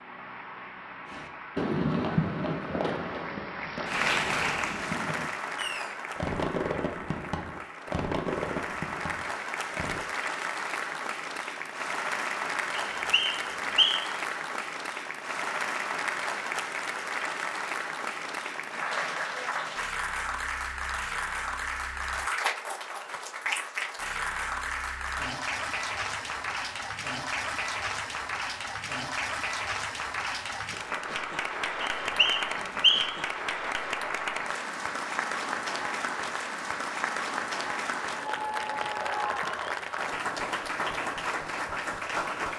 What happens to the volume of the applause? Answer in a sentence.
The loudness of the applause stays about the same.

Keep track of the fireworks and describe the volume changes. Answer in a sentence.
The volume of the fireworks goes down, then up.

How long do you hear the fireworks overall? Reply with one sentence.
You can hear the fireworks for 9 seconds altogether.